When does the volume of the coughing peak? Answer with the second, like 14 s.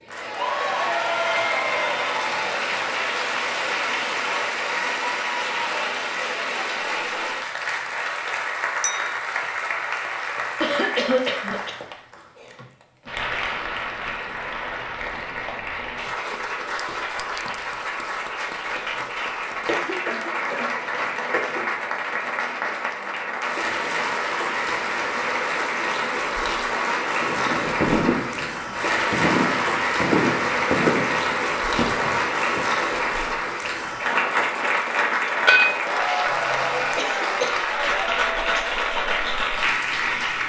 11 s.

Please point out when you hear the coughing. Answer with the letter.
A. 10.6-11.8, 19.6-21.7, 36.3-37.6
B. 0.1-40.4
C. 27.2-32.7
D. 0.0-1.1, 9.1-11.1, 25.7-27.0
A.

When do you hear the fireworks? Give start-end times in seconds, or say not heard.
27.2-32.7.